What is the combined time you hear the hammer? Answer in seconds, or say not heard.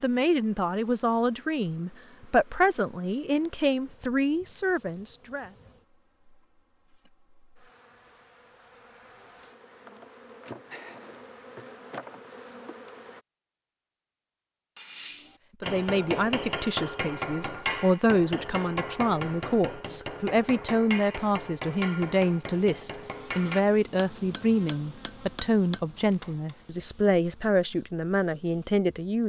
12 s.